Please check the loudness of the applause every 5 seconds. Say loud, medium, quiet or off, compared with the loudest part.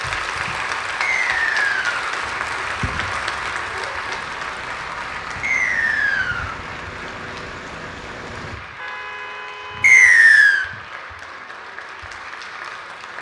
loud, medium, medium.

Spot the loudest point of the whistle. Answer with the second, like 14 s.
10 s.